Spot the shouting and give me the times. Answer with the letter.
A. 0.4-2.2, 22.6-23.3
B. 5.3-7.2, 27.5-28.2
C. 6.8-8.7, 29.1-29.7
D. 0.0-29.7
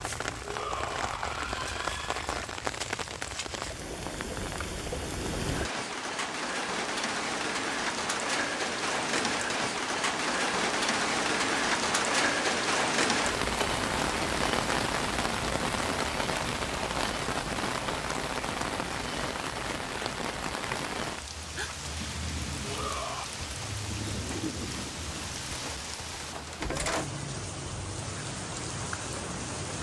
A.